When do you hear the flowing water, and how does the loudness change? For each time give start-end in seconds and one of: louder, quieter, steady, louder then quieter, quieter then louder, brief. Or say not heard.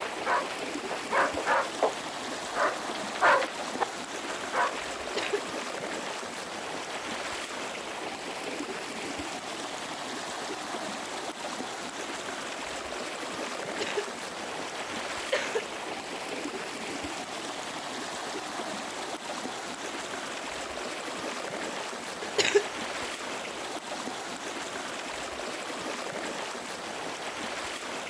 0.0-28.0 steady.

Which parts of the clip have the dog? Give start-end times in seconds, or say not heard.
0.0-5.3.